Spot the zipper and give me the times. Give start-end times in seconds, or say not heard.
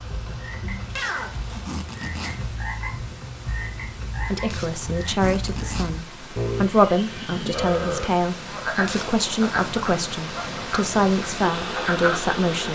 0.9-2.5, 4.5-6.0, 8.8-9.8.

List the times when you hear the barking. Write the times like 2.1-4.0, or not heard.
not heard.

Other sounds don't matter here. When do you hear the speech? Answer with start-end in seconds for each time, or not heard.
4.3-12.7.